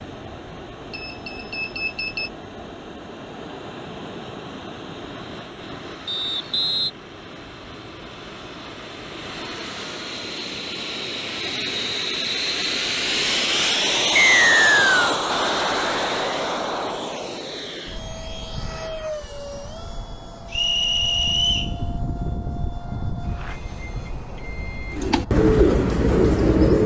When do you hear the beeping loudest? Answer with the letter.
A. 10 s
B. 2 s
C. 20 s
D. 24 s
B.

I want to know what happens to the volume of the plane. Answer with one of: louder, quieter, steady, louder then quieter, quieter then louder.
louder then quieter.